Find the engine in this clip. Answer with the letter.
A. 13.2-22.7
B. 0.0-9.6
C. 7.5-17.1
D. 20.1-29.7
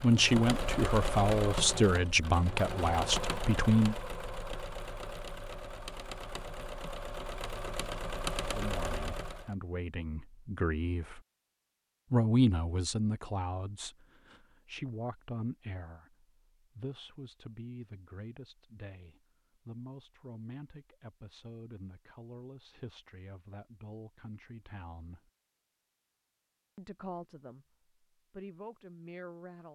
B.